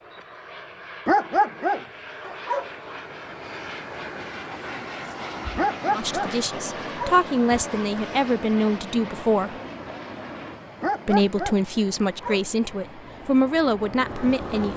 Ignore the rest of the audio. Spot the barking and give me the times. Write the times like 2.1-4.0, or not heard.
1.1-2.7, 5.5-7.2, 10.8-12.4.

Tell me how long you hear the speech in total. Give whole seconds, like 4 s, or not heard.
7 s.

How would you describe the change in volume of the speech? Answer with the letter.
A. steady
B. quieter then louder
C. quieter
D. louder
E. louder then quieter
A.